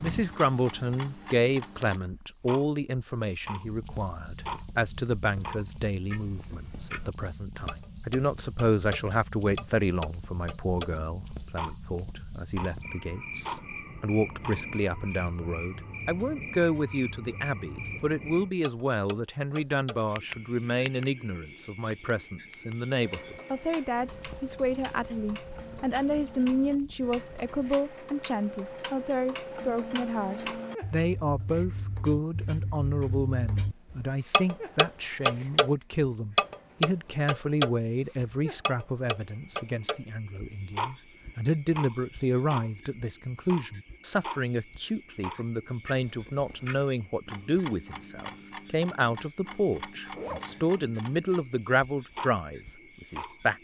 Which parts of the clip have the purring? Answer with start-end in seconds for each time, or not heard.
not heard.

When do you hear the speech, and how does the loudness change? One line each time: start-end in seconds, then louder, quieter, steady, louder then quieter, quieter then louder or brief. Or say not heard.
0.0-53.5 steady.